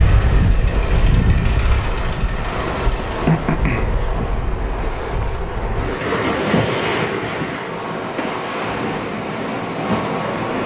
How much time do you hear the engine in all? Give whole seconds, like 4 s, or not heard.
3 s.